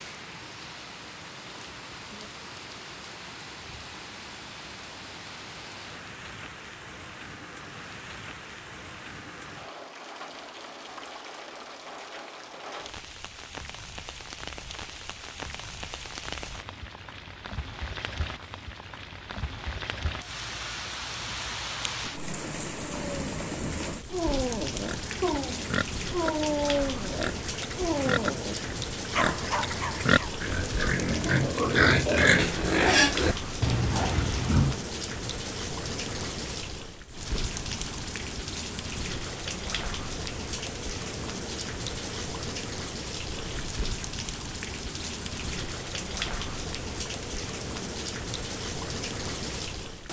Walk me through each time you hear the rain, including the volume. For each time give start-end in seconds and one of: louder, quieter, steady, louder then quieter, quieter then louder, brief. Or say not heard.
0.0-50.0 louder.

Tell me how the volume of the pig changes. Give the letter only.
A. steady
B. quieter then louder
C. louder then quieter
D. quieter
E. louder
E.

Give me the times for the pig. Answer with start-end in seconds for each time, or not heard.
24.8-34.8.